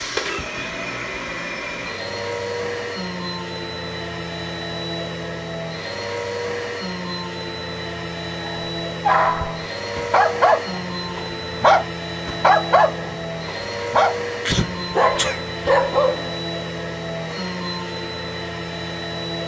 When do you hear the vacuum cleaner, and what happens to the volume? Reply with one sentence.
The vacuum cleaner can be heard from 0.0 to 19.4 s, at a steady volume.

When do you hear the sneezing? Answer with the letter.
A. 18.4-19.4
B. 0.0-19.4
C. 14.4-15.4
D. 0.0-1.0
C.